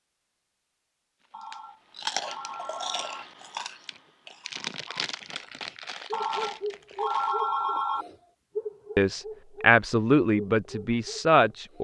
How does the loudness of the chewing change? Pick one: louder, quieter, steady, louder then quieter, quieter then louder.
quieter.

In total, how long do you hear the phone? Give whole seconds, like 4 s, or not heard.
4 s.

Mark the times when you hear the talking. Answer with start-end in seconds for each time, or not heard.
8.9-11.7.